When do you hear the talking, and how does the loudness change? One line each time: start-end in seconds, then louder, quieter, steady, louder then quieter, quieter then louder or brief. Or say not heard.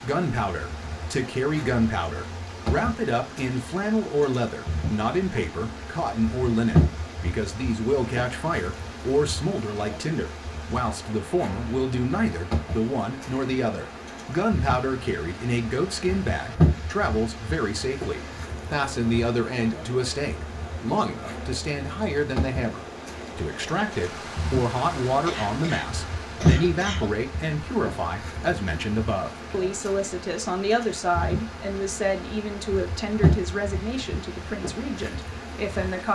0.0-36.1 steady.